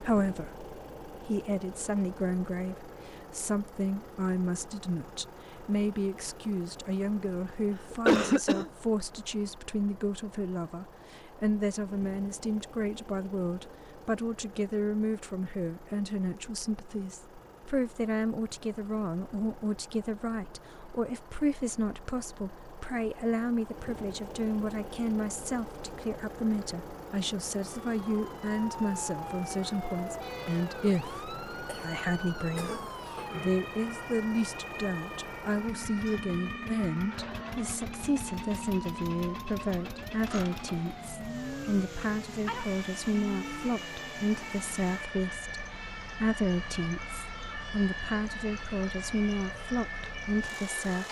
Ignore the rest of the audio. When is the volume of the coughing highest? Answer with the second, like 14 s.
8 s.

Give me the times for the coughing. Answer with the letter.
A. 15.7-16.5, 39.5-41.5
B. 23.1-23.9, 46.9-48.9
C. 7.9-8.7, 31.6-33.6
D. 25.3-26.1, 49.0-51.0
C.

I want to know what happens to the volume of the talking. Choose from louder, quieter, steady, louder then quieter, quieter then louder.
steady.